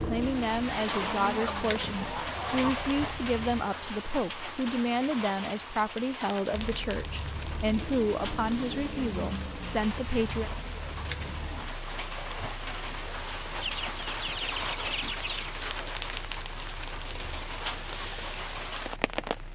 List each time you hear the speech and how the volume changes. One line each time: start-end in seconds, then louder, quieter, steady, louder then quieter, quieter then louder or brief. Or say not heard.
0.0-10.5 steady.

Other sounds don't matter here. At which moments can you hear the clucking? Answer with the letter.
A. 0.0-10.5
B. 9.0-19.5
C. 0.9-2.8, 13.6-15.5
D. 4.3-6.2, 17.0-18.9
C.